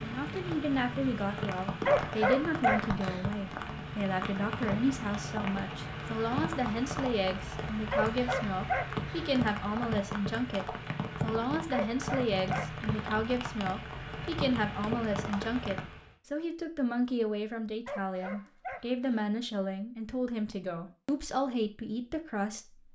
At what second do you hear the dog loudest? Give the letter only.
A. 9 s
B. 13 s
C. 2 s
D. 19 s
C.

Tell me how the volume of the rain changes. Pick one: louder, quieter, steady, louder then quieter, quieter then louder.
steady.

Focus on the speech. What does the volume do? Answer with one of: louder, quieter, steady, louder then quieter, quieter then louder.
steady.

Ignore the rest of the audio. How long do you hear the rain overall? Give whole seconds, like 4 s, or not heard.
16 s.